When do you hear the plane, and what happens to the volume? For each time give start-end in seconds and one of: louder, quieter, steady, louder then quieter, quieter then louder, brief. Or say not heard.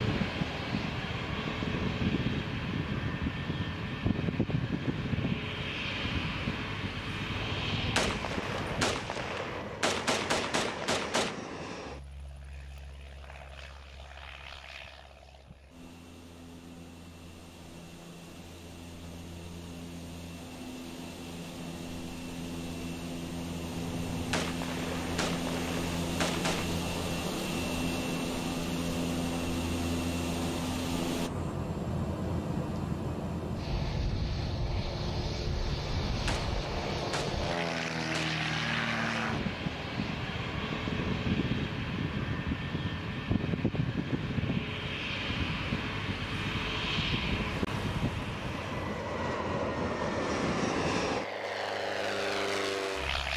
0.0-53.3 quieter then louder.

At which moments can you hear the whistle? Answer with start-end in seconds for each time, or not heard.
not heard.